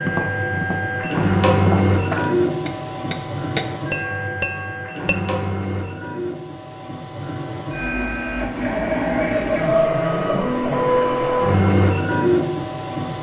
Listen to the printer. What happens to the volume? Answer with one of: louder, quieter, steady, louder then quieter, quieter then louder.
quieter then louder.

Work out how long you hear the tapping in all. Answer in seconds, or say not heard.
5 s.